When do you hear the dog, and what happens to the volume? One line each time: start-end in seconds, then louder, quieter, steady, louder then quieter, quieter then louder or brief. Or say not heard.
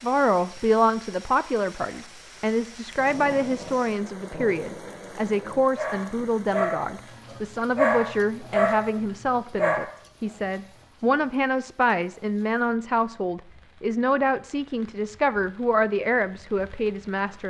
3.0-9.8 louder.